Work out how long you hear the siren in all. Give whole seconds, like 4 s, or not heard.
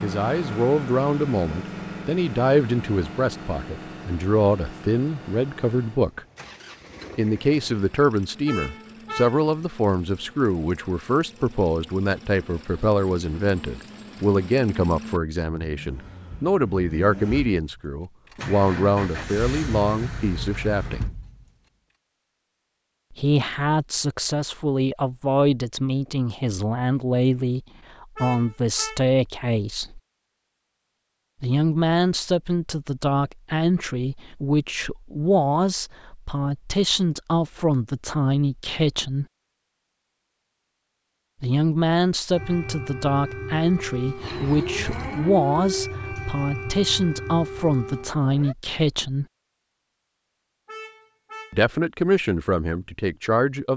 6 s.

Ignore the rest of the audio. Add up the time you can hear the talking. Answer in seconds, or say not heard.
45 s.